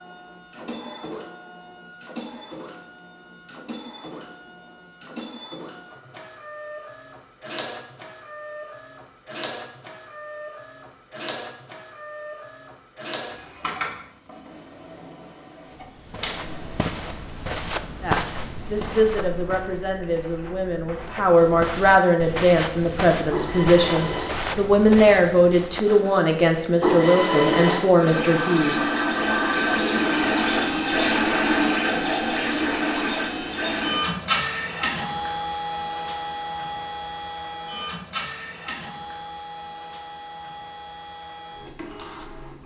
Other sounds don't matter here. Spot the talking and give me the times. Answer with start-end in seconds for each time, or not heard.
18.0-29.4.